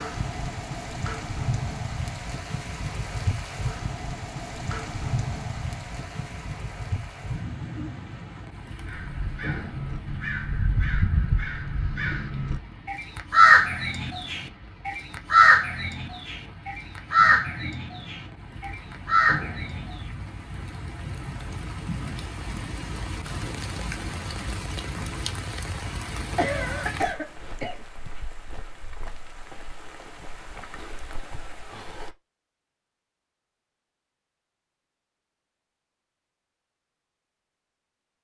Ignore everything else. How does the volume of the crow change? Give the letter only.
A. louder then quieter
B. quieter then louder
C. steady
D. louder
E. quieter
A.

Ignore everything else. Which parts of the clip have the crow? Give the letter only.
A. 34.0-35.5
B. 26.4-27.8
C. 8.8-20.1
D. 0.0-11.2
C.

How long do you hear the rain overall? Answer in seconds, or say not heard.
32 s.